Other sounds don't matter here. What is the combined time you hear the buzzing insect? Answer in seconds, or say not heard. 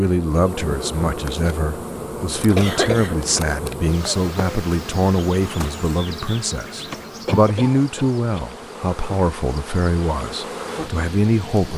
12 s.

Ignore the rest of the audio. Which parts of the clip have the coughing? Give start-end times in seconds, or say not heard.
2.5-3.4, 7.2-8.5.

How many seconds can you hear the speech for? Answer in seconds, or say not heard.
12 s.